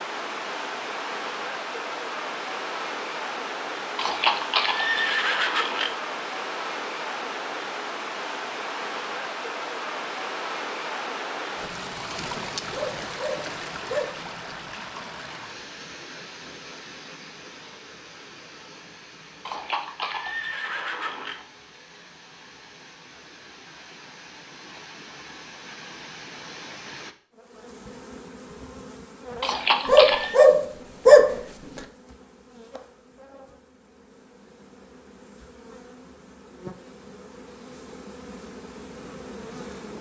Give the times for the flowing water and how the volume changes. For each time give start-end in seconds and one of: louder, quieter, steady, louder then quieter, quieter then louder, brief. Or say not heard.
0.0-27.1 quieter.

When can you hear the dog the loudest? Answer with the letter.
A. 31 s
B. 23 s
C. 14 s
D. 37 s
A.